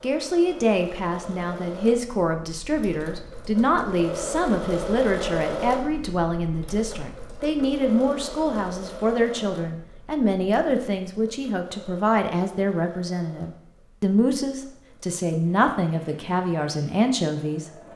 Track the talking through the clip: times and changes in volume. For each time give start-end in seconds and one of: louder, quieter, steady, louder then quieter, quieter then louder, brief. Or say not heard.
0.0-17.6 steady.